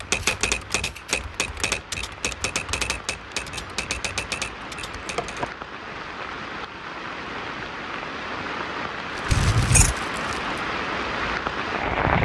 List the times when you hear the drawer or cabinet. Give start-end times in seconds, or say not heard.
not heard.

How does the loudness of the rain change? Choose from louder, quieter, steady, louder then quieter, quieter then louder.
louder.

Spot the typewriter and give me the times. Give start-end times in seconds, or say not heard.
0.0-5.5.